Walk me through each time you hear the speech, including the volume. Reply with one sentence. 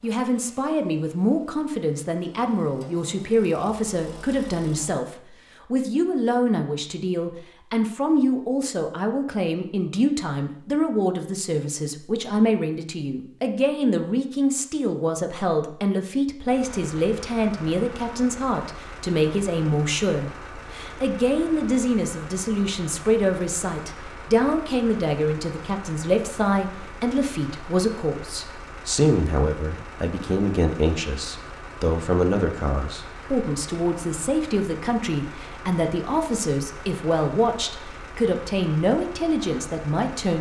The speech can be heard from 0.0 to 40.3 s, at a steady volume.